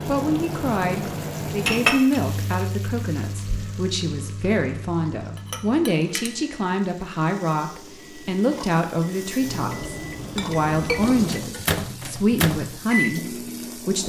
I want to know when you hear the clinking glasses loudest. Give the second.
2 s.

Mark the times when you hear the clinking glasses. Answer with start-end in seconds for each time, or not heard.
1.6-2.2, 5.3-6.3, 10.2-11.2.